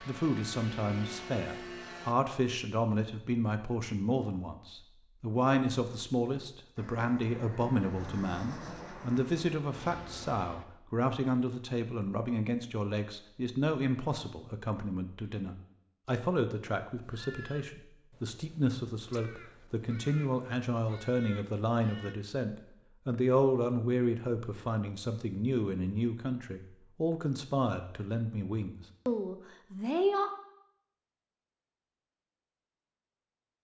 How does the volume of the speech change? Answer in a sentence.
The volume of the speech stays about the same.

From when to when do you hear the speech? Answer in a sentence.
The speech can be heard from 0.0 to 30.3 s.